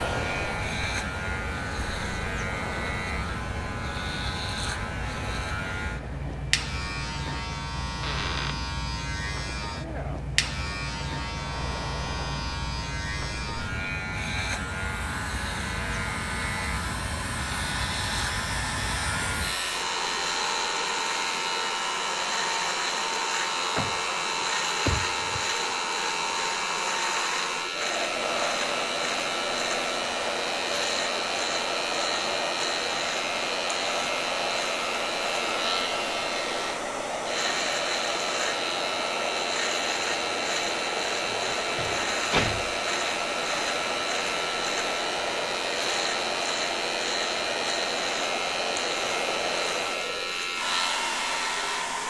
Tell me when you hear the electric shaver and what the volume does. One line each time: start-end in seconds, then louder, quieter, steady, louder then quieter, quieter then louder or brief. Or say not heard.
0.0-52.0 steady.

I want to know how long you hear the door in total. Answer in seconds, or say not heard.
4 s.